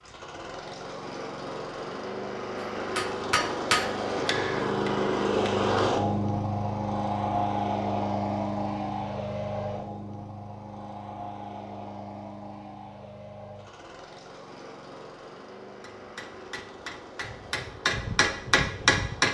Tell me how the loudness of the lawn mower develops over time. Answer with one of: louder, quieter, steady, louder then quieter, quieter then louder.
louder then quieter.